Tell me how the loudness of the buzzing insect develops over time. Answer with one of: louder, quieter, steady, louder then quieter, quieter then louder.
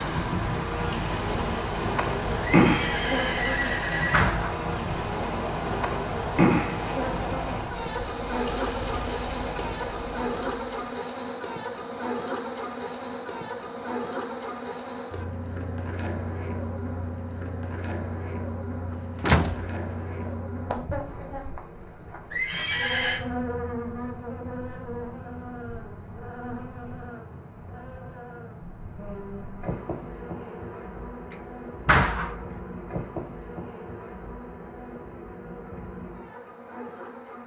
quieter.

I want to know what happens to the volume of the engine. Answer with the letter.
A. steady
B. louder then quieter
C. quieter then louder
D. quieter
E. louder
A.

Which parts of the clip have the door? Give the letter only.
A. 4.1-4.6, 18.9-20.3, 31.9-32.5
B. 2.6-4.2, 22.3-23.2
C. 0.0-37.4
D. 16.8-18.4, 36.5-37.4
A.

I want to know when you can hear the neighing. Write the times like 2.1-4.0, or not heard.
2.6-4.2, 22.3-23.2.